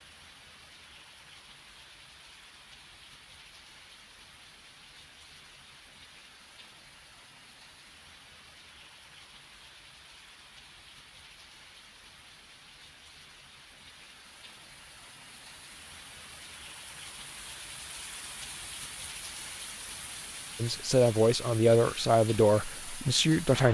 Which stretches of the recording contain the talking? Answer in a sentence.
The talking can be heard from 20.6 to 23.6 s.